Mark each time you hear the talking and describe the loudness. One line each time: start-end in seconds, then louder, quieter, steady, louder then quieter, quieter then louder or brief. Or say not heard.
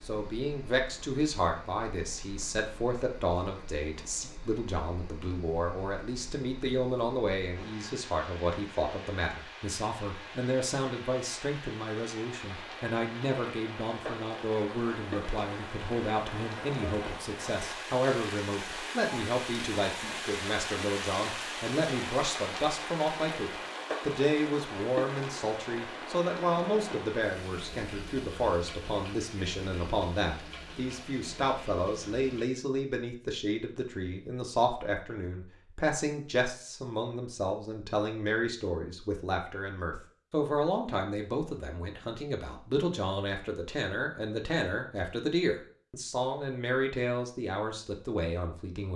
0.1-48.9 steady.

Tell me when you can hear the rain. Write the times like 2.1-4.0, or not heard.
0.0-32.5.